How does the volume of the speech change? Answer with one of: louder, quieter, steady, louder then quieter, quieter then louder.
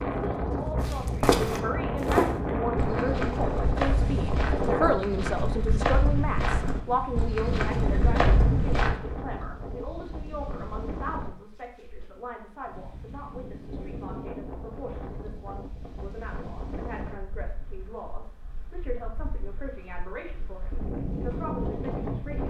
quieter.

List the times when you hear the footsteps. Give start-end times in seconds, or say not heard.
0.8-8.9.